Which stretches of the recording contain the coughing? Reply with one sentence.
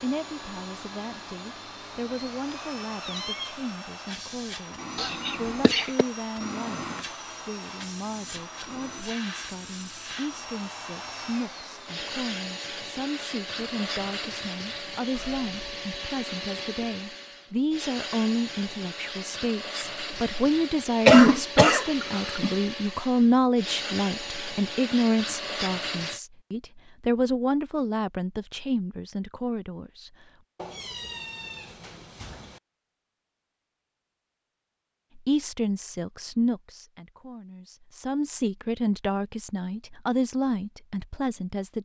The coughing can be heard from 5.0 to 6.0 s and from 21.1 to 22.6 s.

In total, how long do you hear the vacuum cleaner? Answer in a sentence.
The vacuum cleaner can be heard for 26 seconds in total.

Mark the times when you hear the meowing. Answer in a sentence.
You can hear the meowing from 2.5 to 3.7 s, from 15.2 to 15.7 s and from 30.6 to 32.6 s.